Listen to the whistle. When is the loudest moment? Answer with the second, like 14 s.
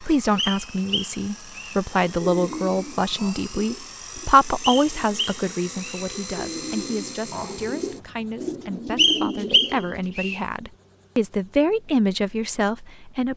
9 s.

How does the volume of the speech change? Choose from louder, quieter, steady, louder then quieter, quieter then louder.
quieter then louder.